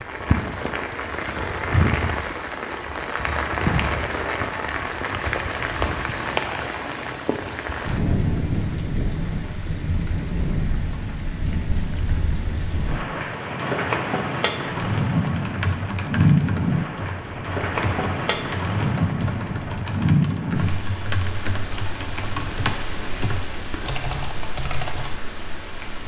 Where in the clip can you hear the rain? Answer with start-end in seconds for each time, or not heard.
0.0-26.0.